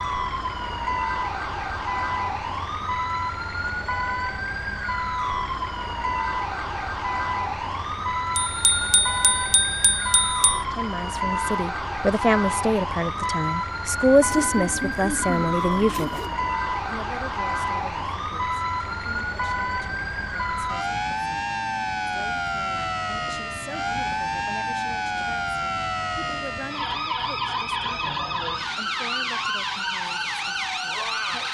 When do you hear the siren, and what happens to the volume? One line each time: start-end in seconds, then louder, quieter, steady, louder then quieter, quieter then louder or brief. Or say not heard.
0.0-31.5 steady.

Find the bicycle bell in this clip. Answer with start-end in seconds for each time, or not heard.
8.3-10.6.